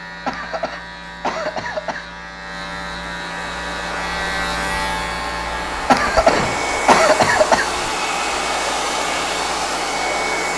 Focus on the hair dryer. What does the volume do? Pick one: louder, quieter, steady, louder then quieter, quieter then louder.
louder.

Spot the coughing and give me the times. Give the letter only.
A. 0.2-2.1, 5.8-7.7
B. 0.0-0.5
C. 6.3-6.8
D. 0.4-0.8
A.